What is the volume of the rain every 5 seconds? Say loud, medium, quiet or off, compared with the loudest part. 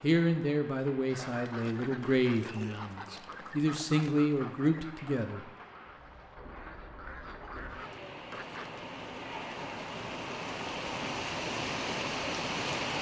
quiet, medium, loud.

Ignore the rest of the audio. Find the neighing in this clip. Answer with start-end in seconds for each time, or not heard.
not heard.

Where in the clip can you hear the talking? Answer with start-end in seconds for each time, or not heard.
0.0-5.5.